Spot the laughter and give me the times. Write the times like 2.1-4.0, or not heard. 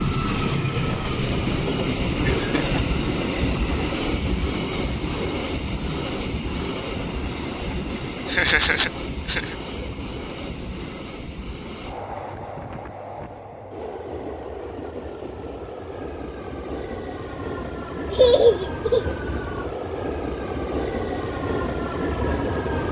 1.7-2.8, 8.2-9.6, 18.1-19.1.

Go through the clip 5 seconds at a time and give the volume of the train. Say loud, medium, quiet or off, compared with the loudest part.
loud, medium, medium, medium, loud.